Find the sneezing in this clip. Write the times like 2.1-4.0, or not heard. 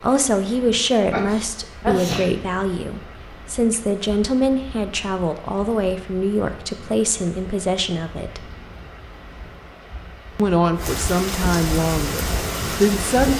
1.1-2.3.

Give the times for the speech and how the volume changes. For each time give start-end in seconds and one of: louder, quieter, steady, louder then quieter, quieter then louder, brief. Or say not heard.
0.0-8.4 steady
10.3-13.3 brief.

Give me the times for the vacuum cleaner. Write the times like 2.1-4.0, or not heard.
not heard.